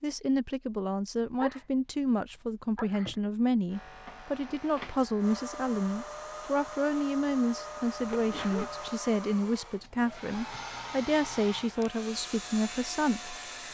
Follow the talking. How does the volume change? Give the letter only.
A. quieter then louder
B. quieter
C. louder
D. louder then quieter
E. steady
E.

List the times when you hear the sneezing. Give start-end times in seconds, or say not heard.
1.4-2.1, 2.8-3.2, 7.9-8.7.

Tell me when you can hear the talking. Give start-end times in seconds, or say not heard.
0.0-13.3.